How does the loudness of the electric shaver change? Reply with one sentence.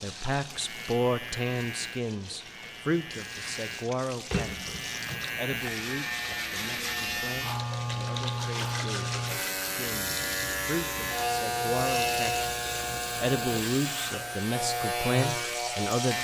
The volume of the electric shaver goes up.